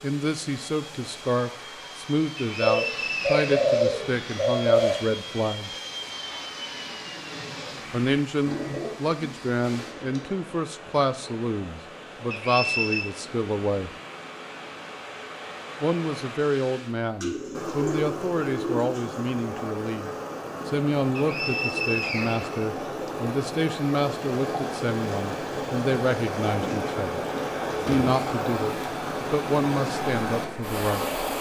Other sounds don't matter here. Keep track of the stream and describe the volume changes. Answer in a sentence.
The loudness of the stream goes up.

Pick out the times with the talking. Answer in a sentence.
You can hear the talking from 0.0 to 5.7 s, from 7.9 to 13.9 s, from 15.8 to 27.2 s and from 27.9 to 31.1 s.